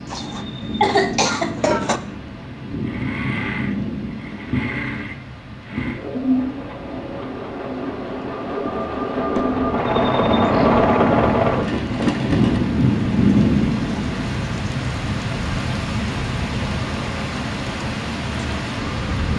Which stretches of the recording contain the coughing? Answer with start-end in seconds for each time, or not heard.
0.1-2.0.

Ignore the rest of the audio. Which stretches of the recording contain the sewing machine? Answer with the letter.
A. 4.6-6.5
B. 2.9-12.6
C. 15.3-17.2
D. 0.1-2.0
B.